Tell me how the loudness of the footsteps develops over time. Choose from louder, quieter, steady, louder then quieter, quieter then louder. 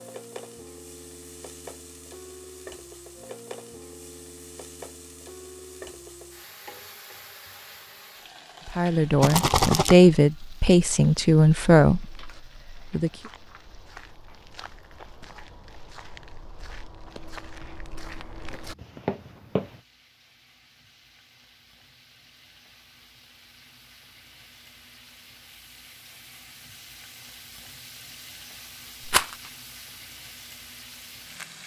louder.